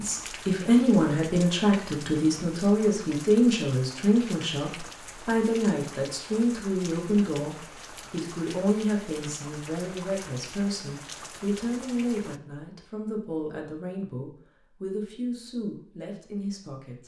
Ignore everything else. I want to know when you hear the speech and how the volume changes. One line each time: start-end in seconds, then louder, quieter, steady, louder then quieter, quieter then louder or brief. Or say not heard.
0.0-17.0 quieter.